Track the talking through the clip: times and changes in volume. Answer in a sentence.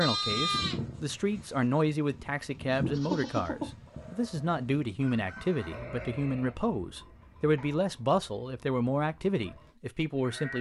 The talking can be heard from 0.0 to 10.5 s, at a steady volume.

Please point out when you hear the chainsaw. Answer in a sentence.
The chainsaw can't be heard in this clip.